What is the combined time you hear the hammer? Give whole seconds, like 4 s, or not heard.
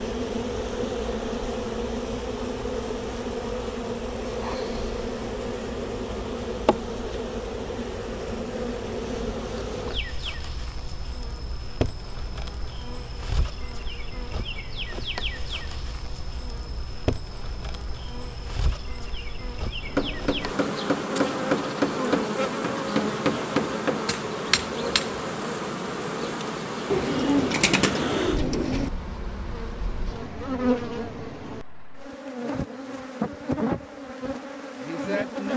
5 s.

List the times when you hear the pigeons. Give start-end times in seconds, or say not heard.
26.9-28.9.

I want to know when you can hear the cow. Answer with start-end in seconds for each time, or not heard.
not heard.